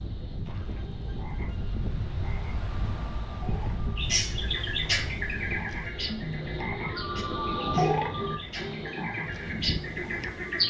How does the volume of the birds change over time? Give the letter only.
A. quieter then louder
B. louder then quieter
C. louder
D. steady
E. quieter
A.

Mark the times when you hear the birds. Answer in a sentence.
The birds can be heard from 4.0 to 10.6 s.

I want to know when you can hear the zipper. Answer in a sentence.
The zipper can't be heard in this clip.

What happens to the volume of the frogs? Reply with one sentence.
The volume of the frogs goes up, then down.